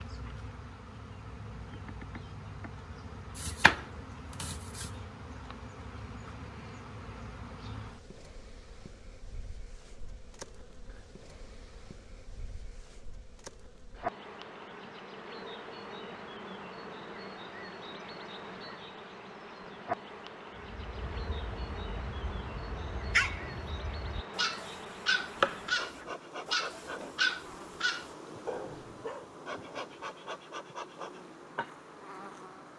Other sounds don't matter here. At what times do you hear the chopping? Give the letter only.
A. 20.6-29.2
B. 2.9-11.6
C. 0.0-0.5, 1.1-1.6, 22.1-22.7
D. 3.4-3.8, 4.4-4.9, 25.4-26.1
D.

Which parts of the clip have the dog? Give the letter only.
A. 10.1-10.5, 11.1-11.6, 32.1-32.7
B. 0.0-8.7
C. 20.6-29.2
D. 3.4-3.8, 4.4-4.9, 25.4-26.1
C.